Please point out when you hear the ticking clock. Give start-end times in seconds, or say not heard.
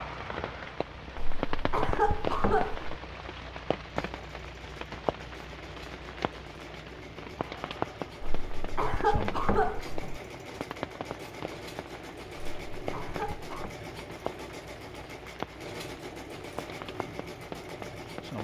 not heard.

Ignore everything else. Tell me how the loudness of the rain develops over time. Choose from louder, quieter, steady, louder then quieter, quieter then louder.
quieter.